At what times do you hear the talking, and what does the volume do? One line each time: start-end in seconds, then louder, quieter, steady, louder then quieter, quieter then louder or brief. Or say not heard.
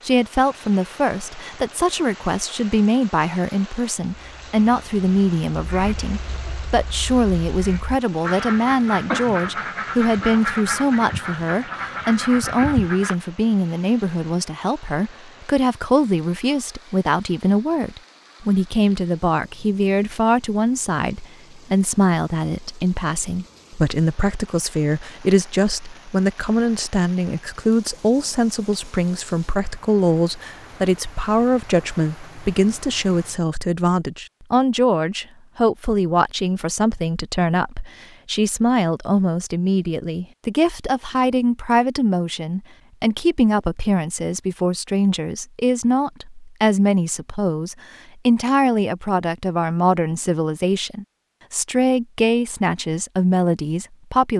0.1-54.3 steady.